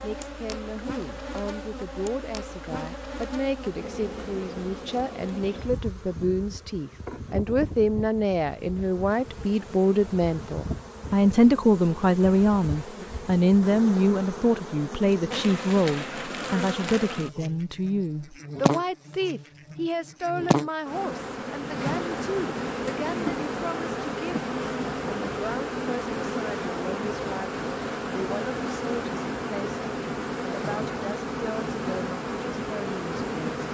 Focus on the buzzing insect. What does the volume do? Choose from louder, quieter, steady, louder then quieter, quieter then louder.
louder.